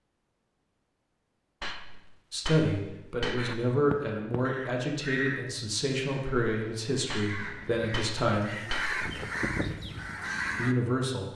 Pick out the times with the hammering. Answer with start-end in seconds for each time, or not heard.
1.6-3.6, 7.1-9.0.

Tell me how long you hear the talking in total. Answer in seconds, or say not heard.
7 s.